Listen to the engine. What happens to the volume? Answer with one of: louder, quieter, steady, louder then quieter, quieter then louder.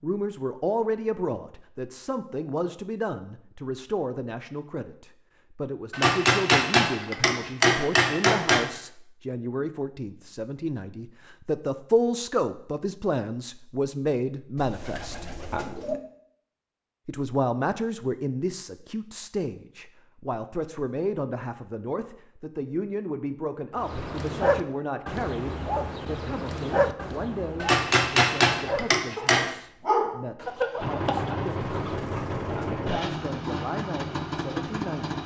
steady.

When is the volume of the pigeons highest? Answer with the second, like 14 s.
16 s.